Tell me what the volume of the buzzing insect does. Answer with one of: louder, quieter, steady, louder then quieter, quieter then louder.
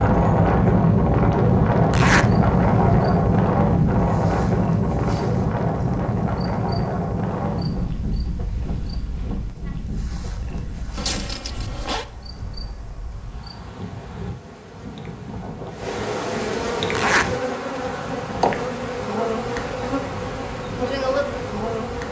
louder.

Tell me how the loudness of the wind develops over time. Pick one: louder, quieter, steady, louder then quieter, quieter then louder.
quieter.